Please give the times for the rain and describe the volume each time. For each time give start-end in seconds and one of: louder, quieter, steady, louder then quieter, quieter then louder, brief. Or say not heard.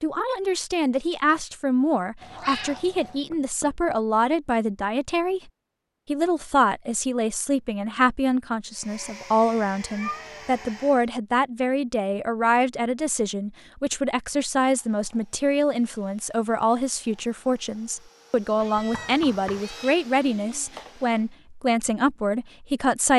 not heard.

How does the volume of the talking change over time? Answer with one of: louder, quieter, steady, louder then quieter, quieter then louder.
steady.